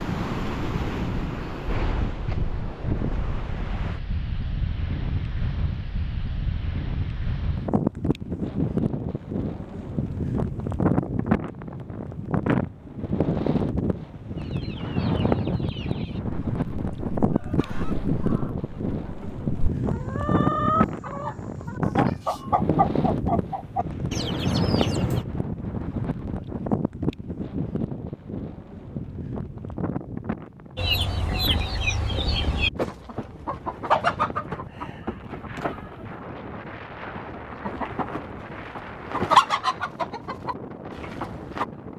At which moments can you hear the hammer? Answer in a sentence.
The hammer can't be heard in this clip.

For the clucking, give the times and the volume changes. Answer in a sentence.
The clucking can be heard from 14.3 to 25.2 s, getting louder; and from 30.8 to 41.6 s, getting quieter then louder.